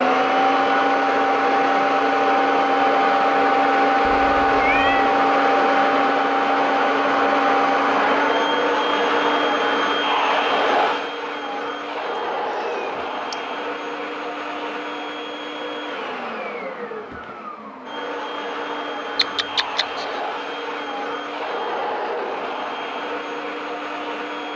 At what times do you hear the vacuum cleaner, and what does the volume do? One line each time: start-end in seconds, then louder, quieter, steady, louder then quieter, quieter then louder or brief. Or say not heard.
0.0-24.5 quieter.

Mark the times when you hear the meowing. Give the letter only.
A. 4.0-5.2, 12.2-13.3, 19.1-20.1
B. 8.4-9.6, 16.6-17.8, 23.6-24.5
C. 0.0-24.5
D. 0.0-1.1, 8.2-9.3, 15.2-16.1
A.